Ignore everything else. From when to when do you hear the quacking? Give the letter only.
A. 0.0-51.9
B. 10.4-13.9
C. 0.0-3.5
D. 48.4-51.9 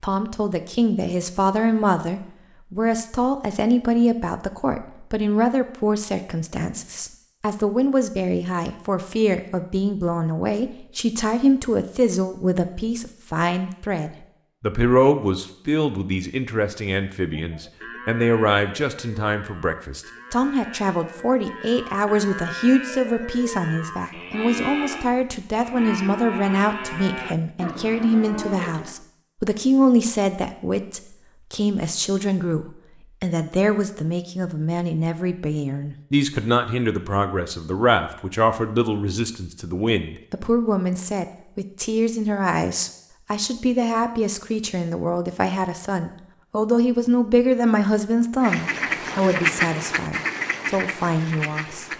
D.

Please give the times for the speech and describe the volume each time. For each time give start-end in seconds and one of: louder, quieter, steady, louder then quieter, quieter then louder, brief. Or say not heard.
0.0-51.9 steady.